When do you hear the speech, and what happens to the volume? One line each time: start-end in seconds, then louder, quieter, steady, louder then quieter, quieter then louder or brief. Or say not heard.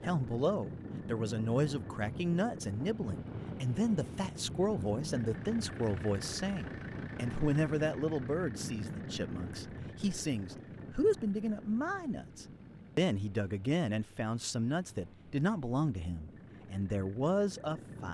0.0-18.0 steady.